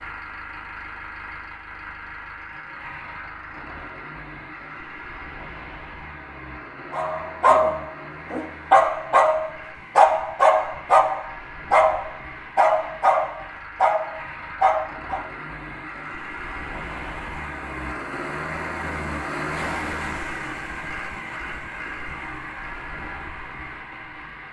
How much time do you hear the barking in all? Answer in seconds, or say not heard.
8 s.